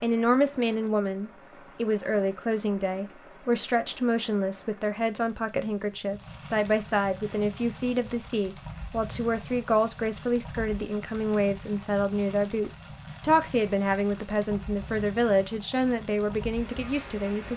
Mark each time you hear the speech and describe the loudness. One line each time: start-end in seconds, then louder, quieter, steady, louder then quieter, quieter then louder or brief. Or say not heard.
0.0-17.5 steady.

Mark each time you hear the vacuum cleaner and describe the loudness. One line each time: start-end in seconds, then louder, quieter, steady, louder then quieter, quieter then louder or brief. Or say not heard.
not heard.